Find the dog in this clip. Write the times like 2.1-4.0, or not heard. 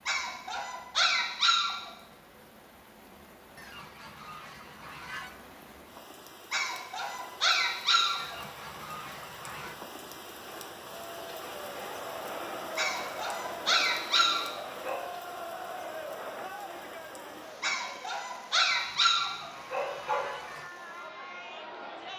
0.1-1.9, 6.5-8.3, 12.8-15.0, 17.6-20.3.